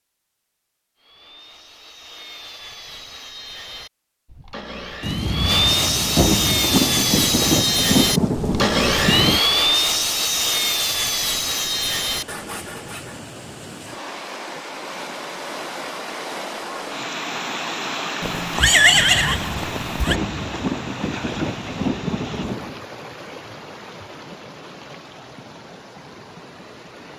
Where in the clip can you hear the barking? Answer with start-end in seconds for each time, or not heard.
not heard.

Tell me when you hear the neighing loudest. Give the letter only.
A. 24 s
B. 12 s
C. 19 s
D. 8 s
C.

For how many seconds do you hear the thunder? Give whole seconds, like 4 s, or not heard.
8 s.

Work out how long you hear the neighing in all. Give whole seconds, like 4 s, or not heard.
2 s.